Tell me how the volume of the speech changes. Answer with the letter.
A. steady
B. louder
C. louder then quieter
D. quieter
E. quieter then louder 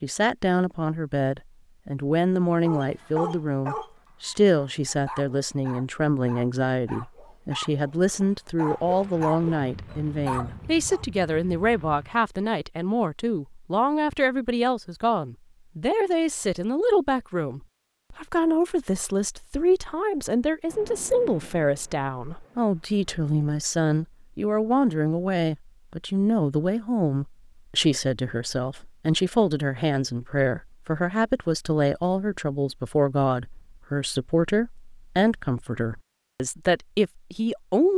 A.